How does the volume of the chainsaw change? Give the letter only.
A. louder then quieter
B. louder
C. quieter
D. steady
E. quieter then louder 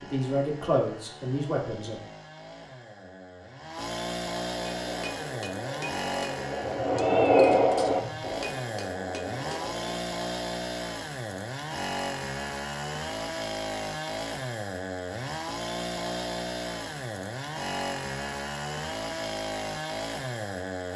B.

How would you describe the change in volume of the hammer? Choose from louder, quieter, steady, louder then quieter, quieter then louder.
louder then quieter.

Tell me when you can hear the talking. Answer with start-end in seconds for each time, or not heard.
0.0-2.0.